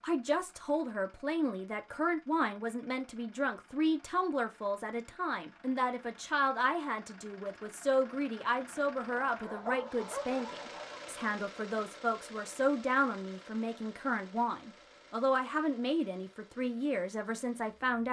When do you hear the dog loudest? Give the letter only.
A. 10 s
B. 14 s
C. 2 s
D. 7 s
A.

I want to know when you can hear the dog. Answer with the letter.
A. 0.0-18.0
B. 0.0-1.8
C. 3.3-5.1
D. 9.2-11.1
D.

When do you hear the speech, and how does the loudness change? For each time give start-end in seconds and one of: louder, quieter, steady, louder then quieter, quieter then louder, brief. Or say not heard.
0.0-18.0 steady.